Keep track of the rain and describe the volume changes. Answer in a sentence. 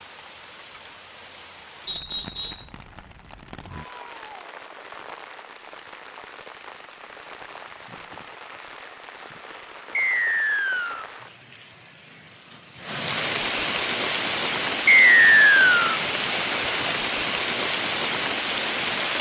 The volume of the rain goes up.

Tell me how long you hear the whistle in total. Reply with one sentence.
The whistle can be heard for 3 seconds in total.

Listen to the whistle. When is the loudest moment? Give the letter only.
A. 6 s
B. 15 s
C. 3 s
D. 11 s
B.